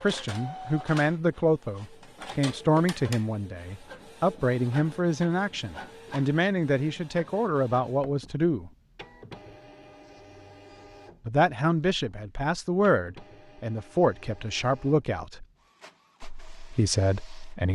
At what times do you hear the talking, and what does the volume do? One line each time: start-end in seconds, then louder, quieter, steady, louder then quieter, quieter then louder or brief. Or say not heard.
0.0-8.7 steady
11.2-15.4 quieter then louder
16.2-17.7 brief.